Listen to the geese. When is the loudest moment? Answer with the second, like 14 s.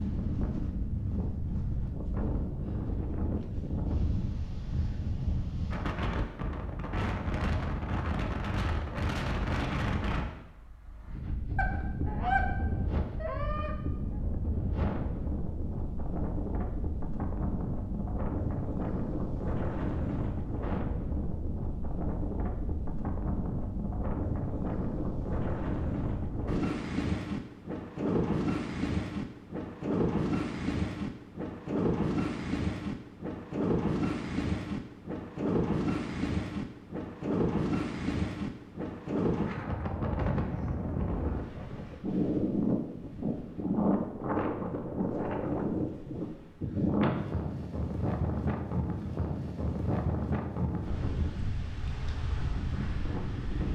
12 s.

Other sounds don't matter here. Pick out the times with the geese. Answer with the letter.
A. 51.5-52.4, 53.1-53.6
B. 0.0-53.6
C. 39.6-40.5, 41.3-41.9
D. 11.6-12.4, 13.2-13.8
D.